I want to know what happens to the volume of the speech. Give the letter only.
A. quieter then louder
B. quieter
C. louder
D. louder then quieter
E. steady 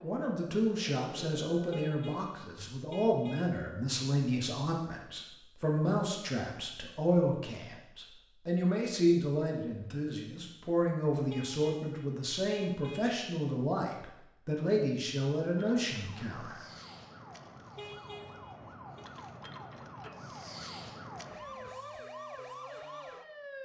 E.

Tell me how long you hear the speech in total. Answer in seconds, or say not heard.
17 s.